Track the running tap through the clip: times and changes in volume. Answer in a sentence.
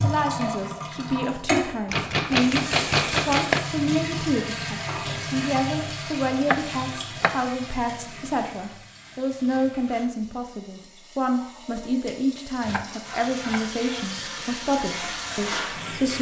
The running tap can be heard from 0.0 to 16.1 s, getting quieter then louder.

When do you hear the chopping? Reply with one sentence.
You can hear the chopping from 1.9 to 3.6 s, from 6.5 to 7.3 s and from 12.6 to 14.3 s.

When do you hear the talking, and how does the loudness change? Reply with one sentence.
You can hear the talking briefly from 0.0 to 2.6 s; and from 3.2 to 16.1 s, at a steady volume.